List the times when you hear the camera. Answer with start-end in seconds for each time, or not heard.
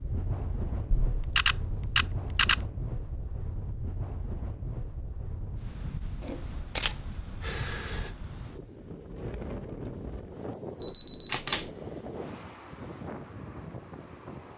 0.9-2.6, 6.2-8.1, 10.8-11.7.